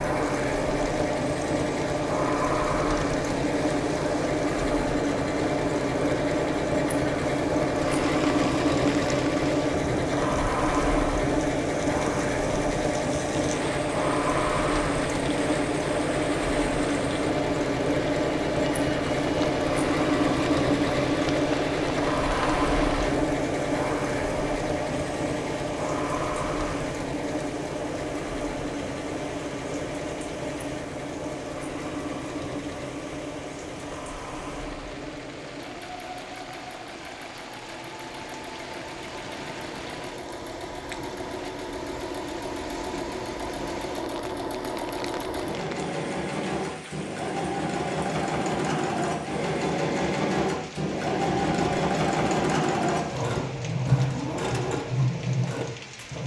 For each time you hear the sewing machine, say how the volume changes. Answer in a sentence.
You can hear the sewing machine from 0.0 to 56.2 s, getting quieter then louder.